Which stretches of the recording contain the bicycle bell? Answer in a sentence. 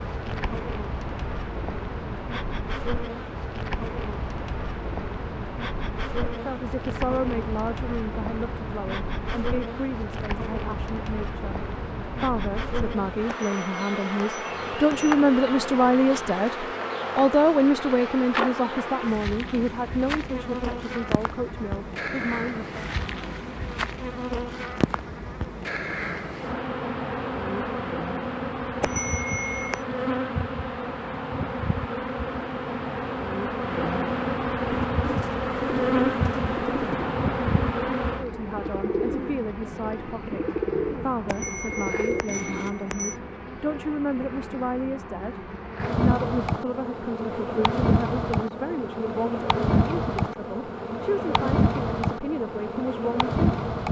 The bicycle bell can be heard from 13.2 to 15.2 s, from 28.8 to 29.8 s and from 41.2 to 43.1 s.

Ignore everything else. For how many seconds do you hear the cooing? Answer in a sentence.
You can hear the cooing for 8 seconds altogether.